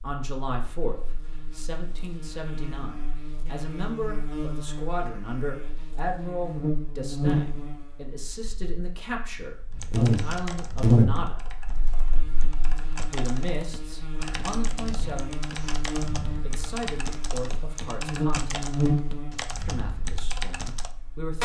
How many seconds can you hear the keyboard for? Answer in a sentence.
The keyboard can be heard for 11 seconds in total.